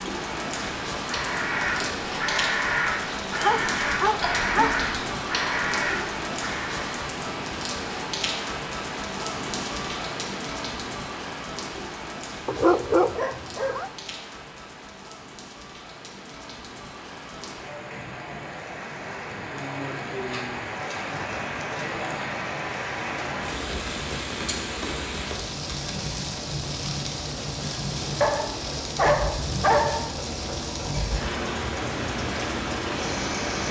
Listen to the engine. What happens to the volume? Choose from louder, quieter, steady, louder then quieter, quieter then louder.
louder.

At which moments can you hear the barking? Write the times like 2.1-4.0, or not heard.
3.4-4.8, 12.4-13.9, 28.2-30.1.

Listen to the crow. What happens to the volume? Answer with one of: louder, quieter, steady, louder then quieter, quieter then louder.
steady.